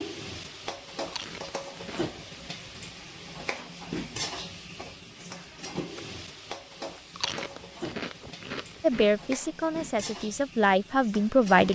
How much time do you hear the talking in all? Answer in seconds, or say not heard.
3 s.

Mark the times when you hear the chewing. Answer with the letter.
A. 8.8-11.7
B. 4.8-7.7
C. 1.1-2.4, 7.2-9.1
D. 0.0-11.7
C.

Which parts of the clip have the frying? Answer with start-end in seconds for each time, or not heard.
0.0-11.7.